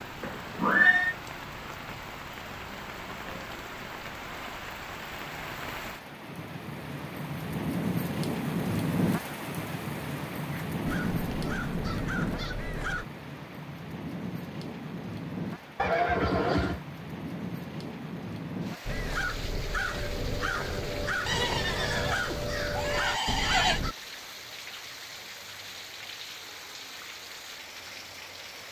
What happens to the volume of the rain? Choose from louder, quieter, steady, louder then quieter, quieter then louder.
louder then quieter.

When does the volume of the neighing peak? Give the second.
1 s.